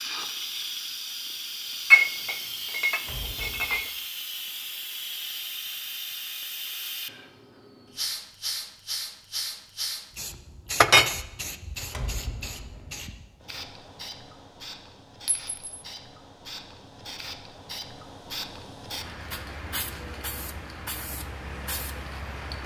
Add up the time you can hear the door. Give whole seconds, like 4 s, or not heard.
2 s.